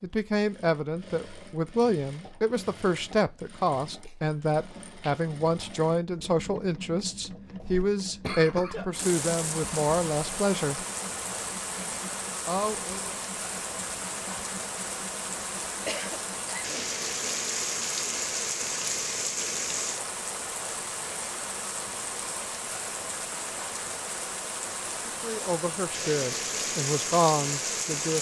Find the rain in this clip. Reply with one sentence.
You can hear the rain from 8.9 to 28.1 s.